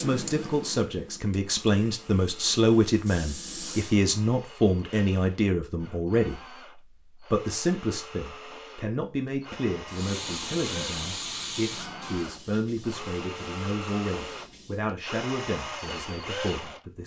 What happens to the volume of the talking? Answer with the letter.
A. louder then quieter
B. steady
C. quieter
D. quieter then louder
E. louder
C.